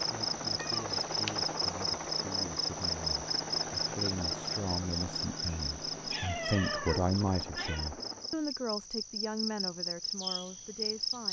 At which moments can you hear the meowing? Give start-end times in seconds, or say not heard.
0.6-1.4, 6.1-7.9.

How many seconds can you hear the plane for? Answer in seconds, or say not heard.
8 s.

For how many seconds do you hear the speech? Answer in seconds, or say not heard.
11 s.